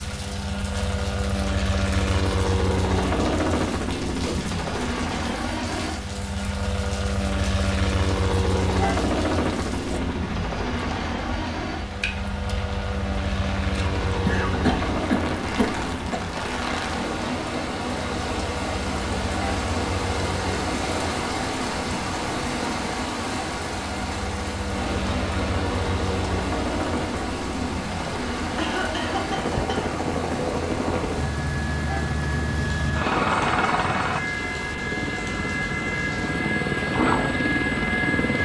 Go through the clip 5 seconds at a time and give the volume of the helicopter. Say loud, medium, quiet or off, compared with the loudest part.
loud, loud, medium, medium, medium, medium, loud, loud.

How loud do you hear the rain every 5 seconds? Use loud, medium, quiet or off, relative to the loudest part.
medium, medium, medium, loud, loud, loud, medium, medium.